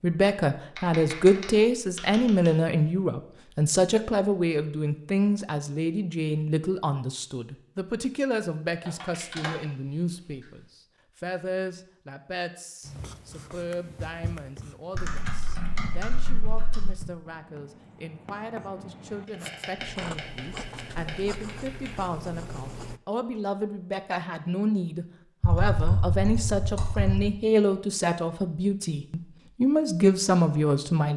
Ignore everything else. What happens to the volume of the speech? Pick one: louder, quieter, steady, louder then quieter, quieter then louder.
quieter then louder.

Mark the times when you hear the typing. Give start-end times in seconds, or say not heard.
0.8-2.5, 8.8-9.5, 14.9-16.9, 19.3-21.9, 25.4-27.3.